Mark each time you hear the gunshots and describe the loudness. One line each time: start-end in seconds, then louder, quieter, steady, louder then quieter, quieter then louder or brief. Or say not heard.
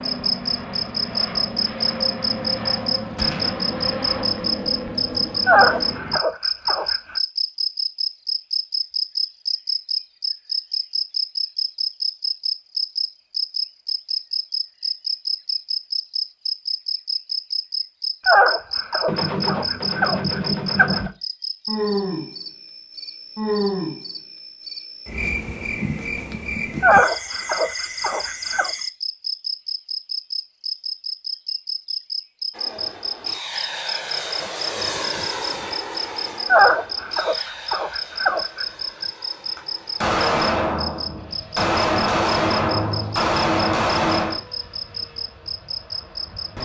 3.1-3.6 brief
19.1-21.1 brief
39.5-44.4 quieter then louder.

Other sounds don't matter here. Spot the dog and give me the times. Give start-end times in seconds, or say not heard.
5.5-7.2, 18.2-21.1, 26.8-28.7, 36.5-38.6.